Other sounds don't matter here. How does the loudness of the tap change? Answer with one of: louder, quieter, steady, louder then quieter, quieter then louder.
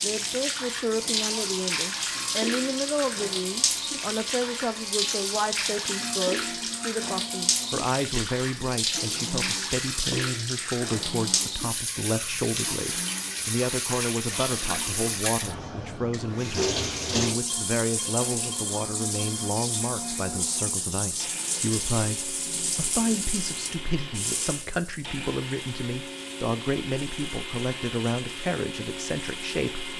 quieter.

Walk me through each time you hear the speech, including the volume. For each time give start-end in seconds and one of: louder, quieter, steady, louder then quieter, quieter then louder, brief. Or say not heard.
0.0-29.9 steady.